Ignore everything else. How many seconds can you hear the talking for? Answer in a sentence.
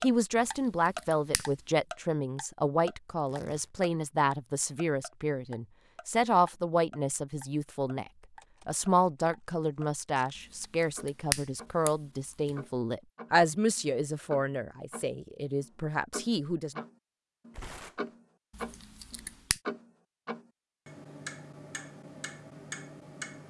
You can hear the talking for 17 seconds altogether.